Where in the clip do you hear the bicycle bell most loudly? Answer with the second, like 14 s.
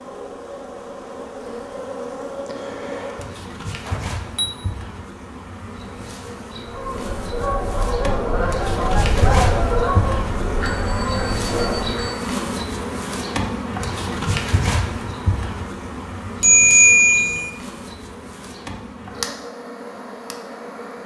17 s.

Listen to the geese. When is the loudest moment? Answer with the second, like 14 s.
9 s.